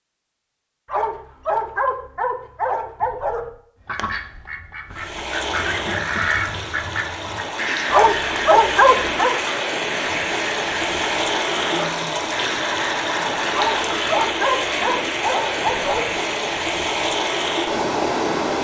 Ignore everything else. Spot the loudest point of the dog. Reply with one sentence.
The loudest moment of the dog is at 9 seconds.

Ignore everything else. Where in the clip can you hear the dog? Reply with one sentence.
You can hear the dog from 0.8 to 3.5 s, from 7.9 to 9.3 s and from 13.5 to 16.1 s.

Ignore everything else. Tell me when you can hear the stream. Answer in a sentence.
You can hear the stream from 4.9 to 18.6 s.